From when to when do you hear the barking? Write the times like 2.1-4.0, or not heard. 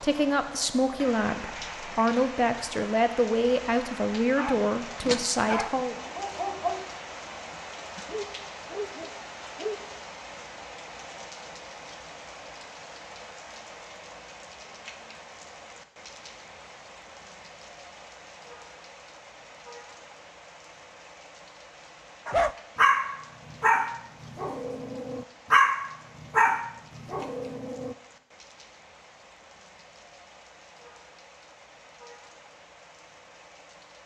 4.2-9.8, 22.2-27.9.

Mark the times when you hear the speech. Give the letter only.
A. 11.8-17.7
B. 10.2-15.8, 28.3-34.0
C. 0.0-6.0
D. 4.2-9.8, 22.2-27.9
C.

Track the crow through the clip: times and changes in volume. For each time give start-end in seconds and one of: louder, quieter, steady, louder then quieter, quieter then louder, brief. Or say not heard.
not heard.